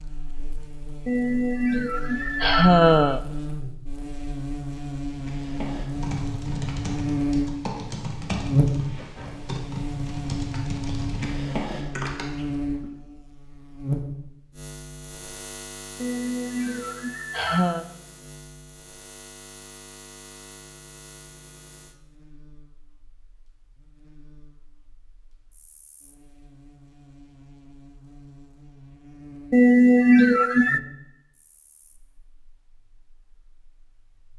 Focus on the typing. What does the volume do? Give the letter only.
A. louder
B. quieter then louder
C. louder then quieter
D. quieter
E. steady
E.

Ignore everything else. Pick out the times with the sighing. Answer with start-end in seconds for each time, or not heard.
1.1-3.2, 16.0-17.9, 29.5-30.8.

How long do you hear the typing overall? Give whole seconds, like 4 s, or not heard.
8 s.